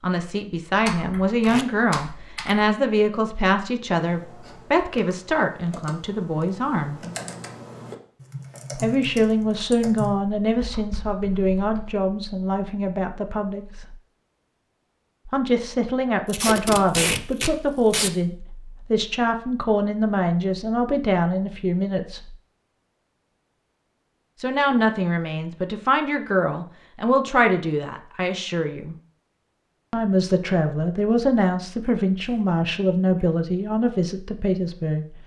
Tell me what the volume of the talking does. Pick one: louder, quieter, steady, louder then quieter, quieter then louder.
steady.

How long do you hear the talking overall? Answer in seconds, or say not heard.
29 s.